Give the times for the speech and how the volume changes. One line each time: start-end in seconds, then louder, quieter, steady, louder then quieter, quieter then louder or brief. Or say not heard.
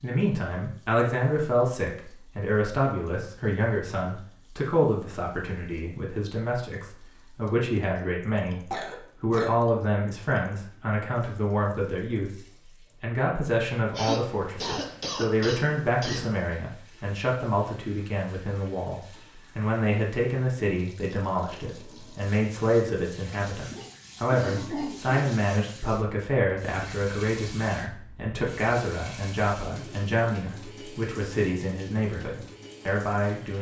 0.0-33.5 steady.